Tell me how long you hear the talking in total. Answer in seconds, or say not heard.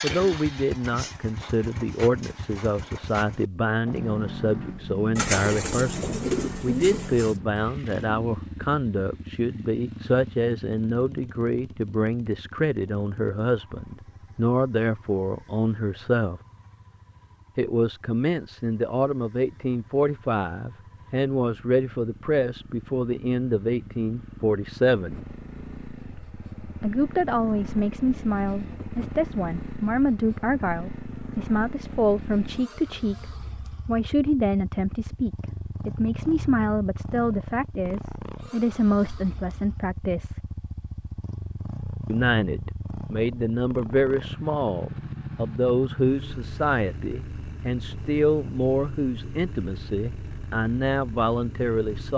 47 s.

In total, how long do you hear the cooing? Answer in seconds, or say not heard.
2 s.